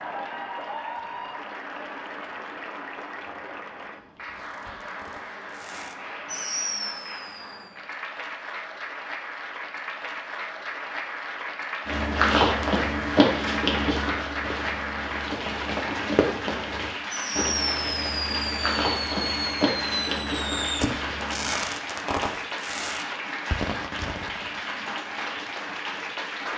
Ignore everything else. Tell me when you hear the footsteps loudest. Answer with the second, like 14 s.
12 s.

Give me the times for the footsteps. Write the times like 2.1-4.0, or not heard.
11.8-21.6.